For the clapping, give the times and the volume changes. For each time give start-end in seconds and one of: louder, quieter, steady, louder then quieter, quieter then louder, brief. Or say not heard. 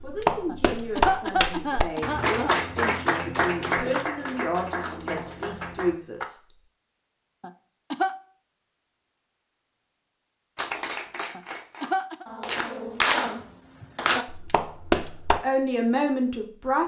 0.0-6.2 quieter
10.6-15.4 louder.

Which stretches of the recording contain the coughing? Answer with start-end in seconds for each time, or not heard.
0.5-2.6, 7.4-8.2, 11.3-12.2.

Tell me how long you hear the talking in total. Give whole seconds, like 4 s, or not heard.
8 s.